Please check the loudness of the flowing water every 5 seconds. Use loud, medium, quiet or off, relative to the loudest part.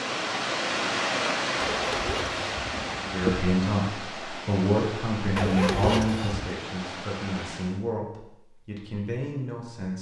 loud, medium.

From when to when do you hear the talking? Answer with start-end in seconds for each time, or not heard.
3.0-9.9.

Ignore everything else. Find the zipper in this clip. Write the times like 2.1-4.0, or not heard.
1.6-3.5, 5.3-6.5.